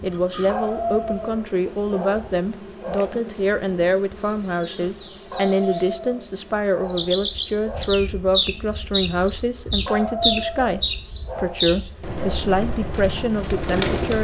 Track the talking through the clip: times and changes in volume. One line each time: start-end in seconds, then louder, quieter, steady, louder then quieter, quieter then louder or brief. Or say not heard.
0.0-14.1 steady.